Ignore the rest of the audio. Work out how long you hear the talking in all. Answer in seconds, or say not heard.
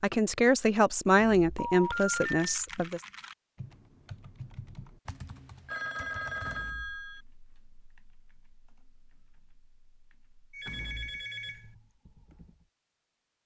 3 s.